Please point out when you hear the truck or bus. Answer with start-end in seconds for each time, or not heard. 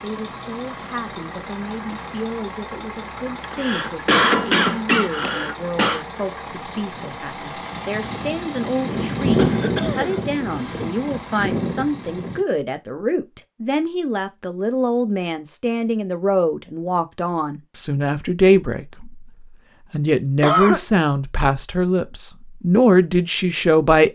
0.0-12.4.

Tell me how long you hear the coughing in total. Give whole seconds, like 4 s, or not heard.
5 s.